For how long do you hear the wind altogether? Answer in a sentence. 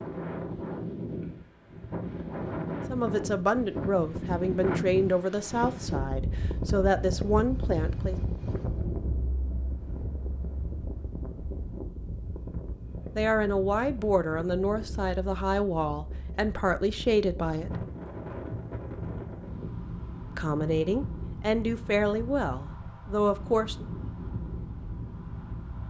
You can hear the wind for 26 seconds altogether.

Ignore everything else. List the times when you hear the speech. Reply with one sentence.
The speech can be heard from 2.9 to 8.2 s, from 13.2 to 17.9 s and from 20.3 to 23.9 s.